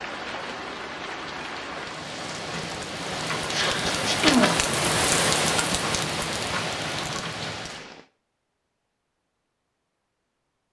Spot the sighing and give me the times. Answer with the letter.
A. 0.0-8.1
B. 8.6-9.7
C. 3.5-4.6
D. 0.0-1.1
C.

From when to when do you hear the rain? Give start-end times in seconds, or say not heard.
0.0-8.1.